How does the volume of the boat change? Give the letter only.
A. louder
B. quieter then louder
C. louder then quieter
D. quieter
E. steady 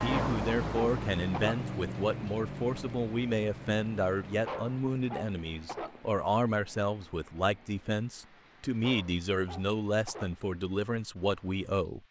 D.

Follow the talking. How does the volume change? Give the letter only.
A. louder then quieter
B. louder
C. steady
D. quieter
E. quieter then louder
C.